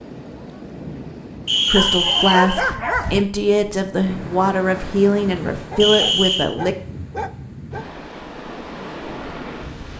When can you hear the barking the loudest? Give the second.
3 s.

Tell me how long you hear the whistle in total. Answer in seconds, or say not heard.
2 s.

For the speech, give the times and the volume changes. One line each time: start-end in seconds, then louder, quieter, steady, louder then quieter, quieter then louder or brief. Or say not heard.
1.6-6.8 steady.